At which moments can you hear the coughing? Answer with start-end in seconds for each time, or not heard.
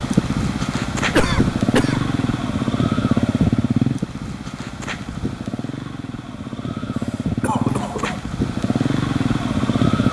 1.1-2.1, 7.4-8.2.